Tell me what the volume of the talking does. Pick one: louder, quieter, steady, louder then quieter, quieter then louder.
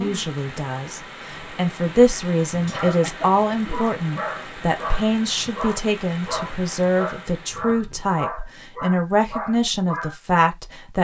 steady.